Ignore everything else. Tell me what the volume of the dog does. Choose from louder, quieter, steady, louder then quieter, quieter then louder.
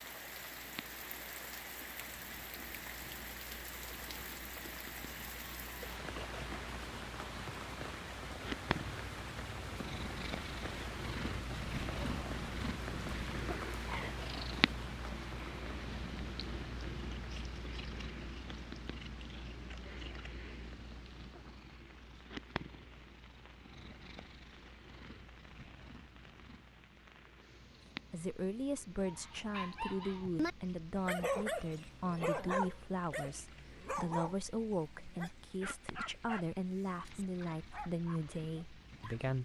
quieter.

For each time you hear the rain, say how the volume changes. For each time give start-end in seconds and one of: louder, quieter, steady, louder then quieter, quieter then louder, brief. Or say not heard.
0.0-39.4 quieter.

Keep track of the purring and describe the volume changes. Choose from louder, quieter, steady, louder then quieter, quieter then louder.
louder then quieter.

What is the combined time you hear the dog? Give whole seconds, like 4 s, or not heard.
10 s.